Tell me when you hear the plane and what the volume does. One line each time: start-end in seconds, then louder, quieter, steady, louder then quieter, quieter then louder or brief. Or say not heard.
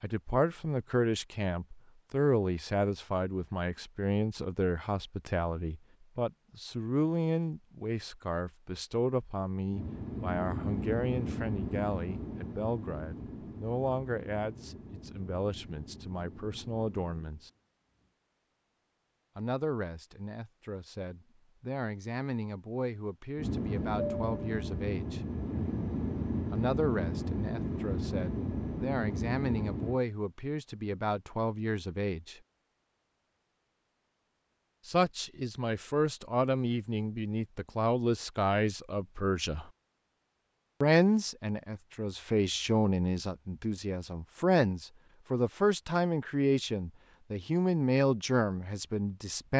9.7-18.1 quieter
23.4-30.0 steady.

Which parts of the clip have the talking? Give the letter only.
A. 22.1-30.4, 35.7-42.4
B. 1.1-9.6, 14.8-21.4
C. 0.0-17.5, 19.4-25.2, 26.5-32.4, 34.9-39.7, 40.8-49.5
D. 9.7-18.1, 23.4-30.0
C.